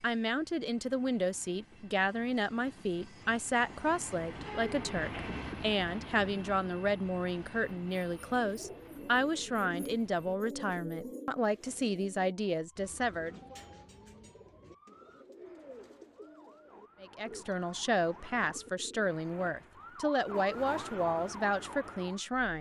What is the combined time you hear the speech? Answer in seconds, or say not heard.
19 s.